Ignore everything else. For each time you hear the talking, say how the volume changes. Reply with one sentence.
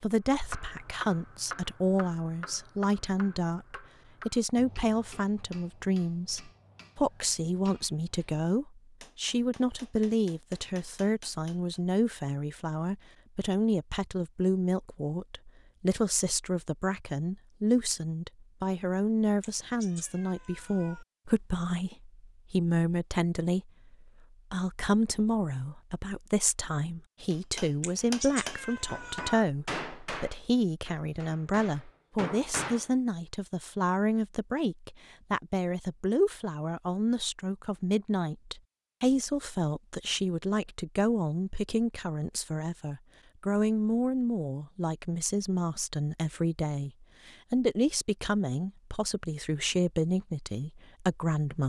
You can hear the talking from 0.0 to 51.6 s, at a steady volume.